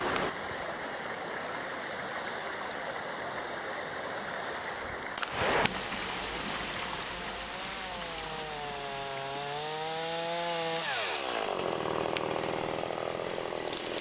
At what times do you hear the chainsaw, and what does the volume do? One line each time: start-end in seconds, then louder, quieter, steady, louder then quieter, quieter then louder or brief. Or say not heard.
0.2-13.9 louder.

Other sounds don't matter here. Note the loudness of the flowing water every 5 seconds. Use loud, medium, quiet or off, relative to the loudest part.
loud, loud, medium.